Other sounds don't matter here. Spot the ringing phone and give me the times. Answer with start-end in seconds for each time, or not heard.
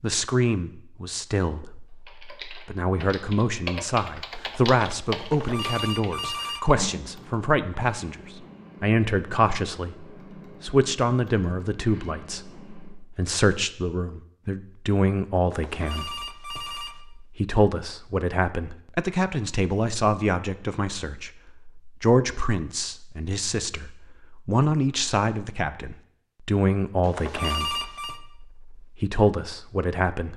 5.2-6.7, 15.5-17.0, 27.0-28.2.